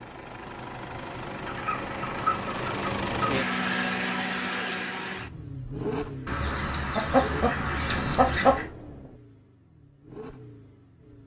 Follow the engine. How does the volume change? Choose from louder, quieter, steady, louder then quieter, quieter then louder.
louder then quieter.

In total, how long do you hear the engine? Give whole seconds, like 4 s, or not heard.
11 s.